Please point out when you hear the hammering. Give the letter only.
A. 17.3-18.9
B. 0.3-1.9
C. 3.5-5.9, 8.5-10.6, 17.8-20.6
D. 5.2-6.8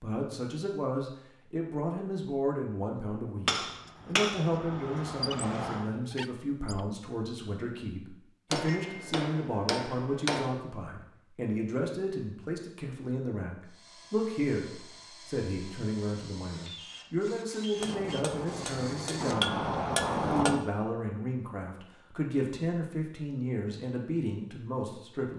C.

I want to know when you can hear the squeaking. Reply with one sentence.
You can hear the squeaking from 5.2 to 6.8 s.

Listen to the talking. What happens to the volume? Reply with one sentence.
The loudness of the talking stays about the same.